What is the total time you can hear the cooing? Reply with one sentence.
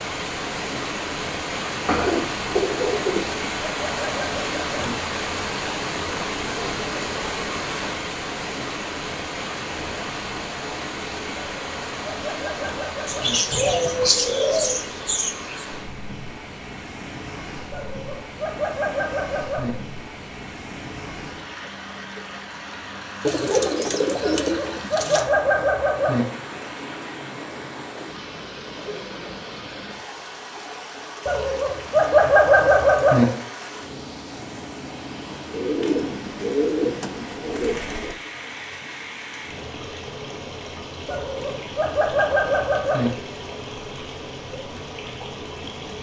The cooing can be heard for 9 seconds in total.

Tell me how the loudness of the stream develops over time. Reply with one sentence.
The volume of the stream goes down.